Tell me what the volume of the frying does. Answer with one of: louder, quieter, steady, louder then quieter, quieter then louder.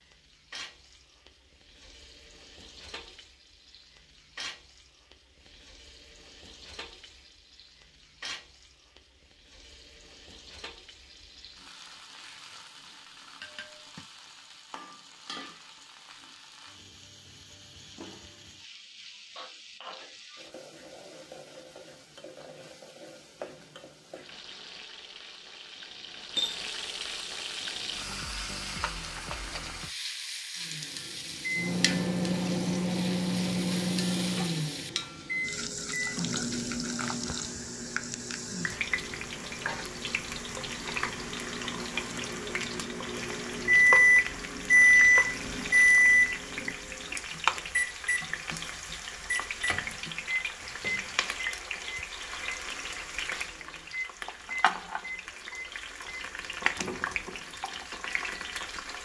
louder.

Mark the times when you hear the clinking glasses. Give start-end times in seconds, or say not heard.
13.4-14.1, 26.4-27.2, 39.5-40.0.